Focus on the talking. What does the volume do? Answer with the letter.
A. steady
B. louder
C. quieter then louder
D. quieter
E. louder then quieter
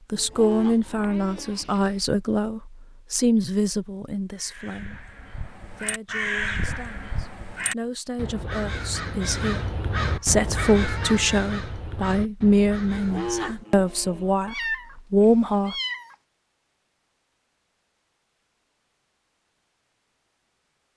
C.